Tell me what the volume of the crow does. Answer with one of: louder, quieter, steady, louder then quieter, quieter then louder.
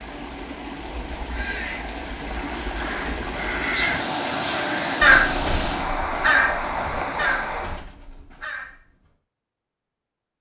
louder then quieter.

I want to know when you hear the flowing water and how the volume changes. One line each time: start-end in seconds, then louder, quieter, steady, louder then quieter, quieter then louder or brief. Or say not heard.
0.0-7.8 louder.